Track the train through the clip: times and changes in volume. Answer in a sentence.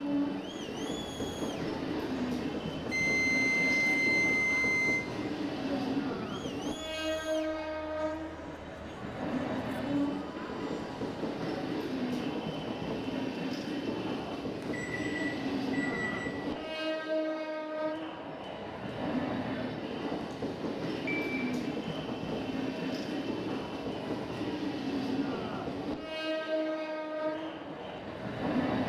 The train can be heard from 0.0 to 28.8 s, at a steady volume.